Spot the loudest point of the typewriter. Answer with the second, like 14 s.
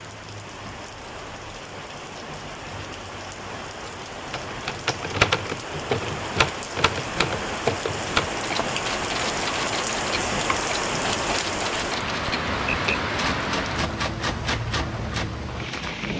5 s.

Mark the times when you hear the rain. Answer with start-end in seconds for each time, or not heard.
0.0-16.1.